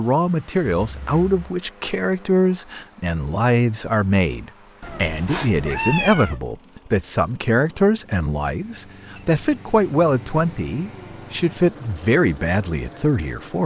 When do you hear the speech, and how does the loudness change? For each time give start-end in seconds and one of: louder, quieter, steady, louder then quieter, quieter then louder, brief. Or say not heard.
0.0-13.6 steady.